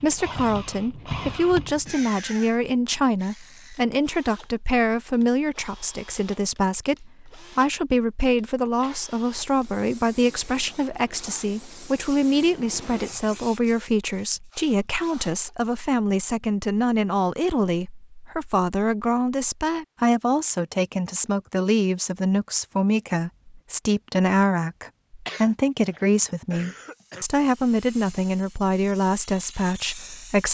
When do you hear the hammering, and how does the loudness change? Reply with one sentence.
You can't hear the hammering here.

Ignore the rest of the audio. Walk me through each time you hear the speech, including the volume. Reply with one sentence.
You can hear the speech from 0.0 to 30.4 s, at a steady volume.